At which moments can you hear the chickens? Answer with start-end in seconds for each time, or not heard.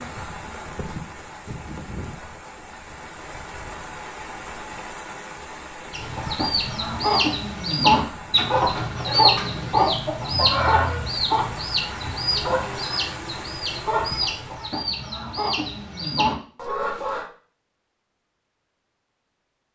5.9-17.2.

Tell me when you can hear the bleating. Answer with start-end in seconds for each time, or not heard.
not heard.